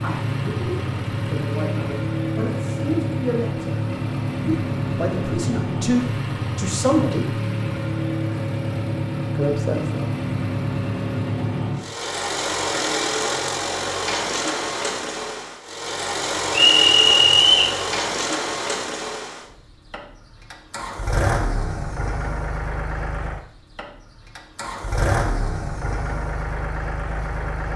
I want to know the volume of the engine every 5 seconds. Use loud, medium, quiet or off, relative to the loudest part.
loud, loud, loud, loud, medium, loud.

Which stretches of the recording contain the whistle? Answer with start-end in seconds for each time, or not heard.
16.5-17.8.